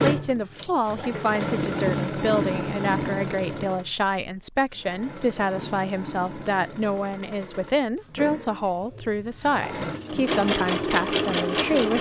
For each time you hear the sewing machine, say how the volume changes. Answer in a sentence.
The sewing machine can be heard from 0.0 to 11.9 s, getting quieter then louder.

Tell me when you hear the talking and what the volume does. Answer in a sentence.
You can hear the talking from 0.0 to 11.9 s, at a steady volume.